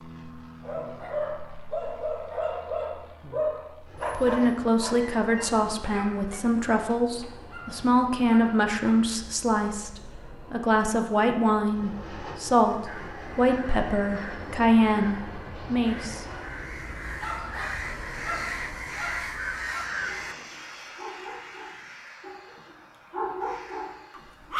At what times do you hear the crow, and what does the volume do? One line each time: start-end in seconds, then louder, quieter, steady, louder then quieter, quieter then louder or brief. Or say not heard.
12.8-20.4 louder.